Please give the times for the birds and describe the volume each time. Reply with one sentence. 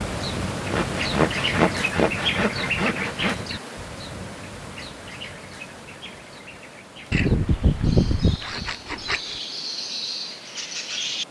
You can hear the birds from 0.0 to 11.2 s, getting quieter then louder.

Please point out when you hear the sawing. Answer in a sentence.
You can hear the sawing from 0.7 to 3.4 s and from 7.1 to 9.4 s.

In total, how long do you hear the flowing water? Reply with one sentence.
The flowing water can be heard for 11 seconds in total.